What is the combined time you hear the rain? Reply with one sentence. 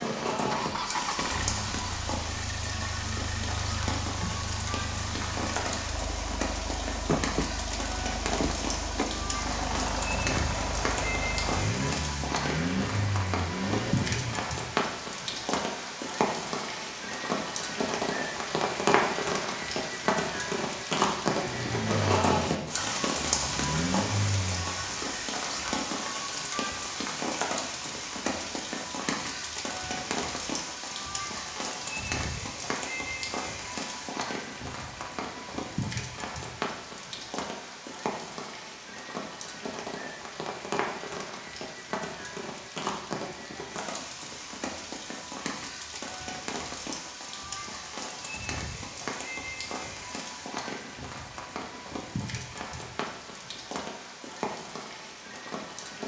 You can hear the rain for 56 seconds altogether.